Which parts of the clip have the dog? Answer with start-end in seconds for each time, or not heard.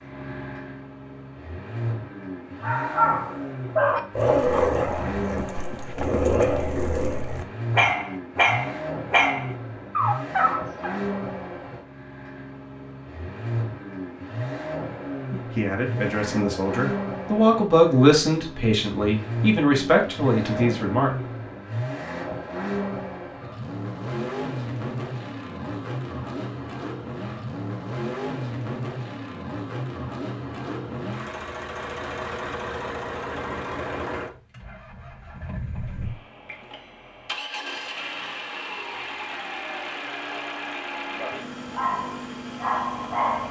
2.6-10.9, 41.7-43.4.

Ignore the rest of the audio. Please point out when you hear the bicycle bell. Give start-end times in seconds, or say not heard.
not heard.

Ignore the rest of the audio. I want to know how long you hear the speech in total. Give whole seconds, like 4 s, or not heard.
6 s.